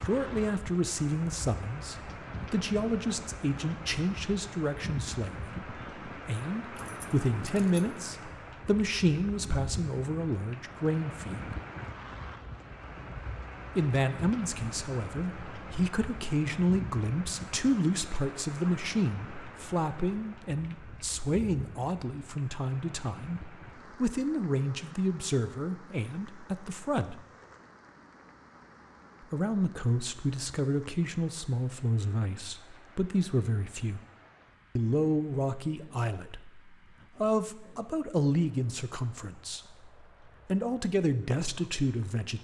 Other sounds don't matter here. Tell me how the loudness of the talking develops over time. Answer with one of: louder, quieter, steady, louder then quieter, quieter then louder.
steady.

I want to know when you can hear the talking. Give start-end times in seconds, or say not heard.
0.0-11.6, 13.8-27.2, 29.3-34.0, 34.8-42.3.